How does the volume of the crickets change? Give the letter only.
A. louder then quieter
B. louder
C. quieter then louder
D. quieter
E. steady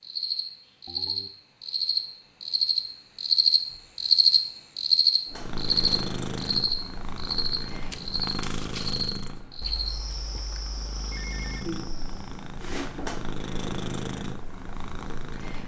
A.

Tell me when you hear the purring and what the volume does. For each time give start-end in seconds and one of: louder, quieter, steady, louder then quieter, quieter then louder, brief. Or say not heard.
5.2-15.6 quieter then louder.